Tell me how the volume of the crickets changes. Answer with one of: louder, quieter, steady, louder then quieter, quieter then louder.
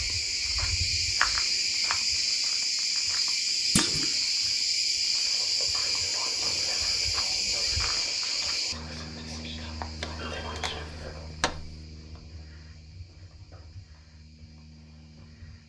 quieter.